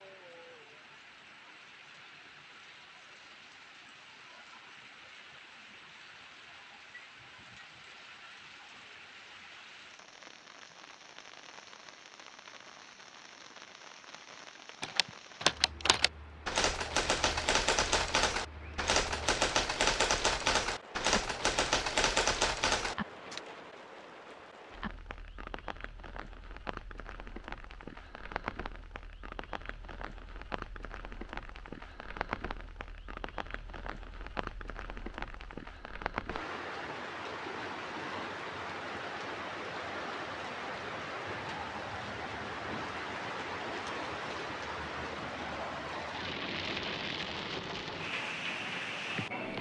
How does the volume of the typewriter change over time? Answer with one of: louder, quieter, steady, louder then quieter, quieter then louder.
steady.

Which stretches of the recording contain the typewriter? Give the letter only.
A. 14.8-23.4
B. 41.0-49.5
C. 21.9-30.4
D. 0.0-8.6
A.